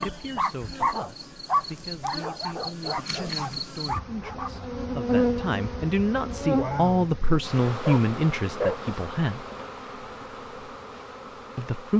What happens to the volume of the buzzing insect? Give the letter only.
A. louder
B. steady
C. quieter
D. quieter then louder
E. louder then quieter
E.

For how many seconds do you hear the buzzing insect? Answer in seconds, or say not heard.
12 s.